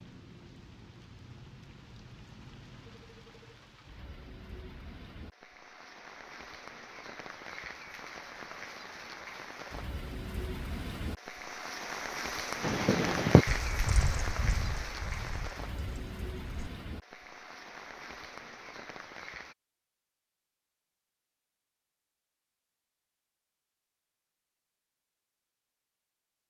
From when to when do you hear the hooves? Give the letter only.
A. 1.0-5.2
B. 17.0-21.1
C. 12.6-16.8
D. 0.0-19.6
C.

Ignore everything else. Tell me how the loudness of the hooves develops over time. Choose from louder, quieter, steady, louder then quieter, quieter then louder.
quieter.